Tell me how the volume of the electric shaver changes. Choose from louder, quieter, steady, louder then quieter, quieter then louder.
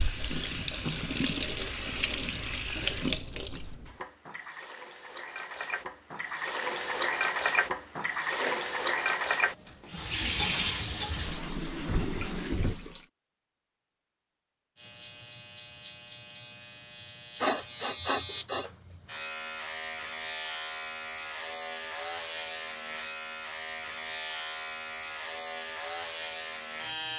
steady.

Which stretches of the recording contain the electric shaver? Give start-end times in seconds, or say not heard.
14.8-27.1.